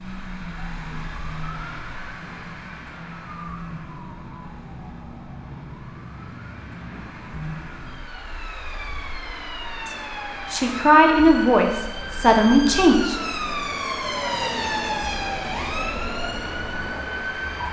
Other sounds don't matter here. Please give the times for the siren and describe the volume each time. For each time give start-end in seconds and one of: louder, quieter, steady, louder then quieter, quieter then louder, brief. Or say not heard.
0.0-17.6 louder.